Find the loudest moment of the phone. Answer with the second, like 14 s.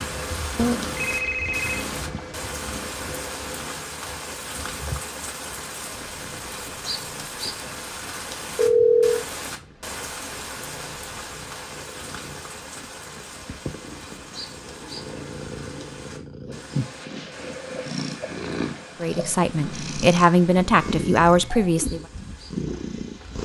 9 s.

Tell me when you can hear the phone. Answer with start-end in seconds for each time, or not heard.
0.6-1.9, 8.6-9.2, 20.7-21.7.